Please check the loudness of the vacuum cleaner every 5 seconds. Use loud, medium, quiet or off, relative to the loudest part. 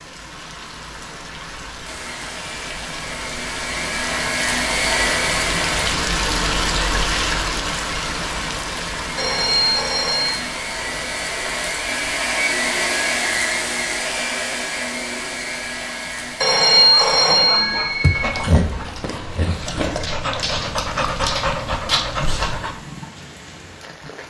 loud, loud, loud, medium, off.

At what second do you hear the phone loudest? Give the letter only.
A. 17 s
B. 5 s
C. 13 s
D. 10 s
A.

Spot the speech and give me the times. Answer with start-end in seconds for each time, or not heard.
not heard.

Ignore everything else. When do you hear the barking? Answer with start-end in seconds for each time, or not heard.
16.9-22.8.